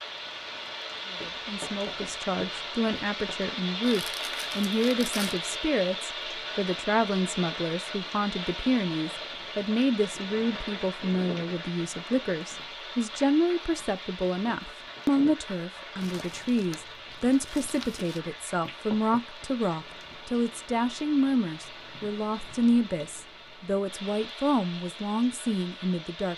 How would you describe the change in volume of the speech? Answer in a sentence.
The loudness of the speech stays about the same.